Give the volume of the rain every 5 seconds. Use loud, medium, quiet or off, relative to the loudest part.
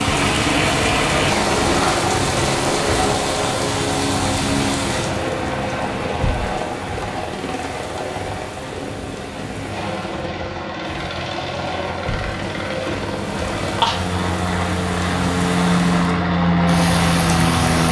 loud, medium, medium, loud.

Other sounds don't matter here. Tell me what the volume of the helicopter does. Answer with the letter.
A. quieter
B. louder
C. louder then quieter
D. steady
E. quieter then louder
E.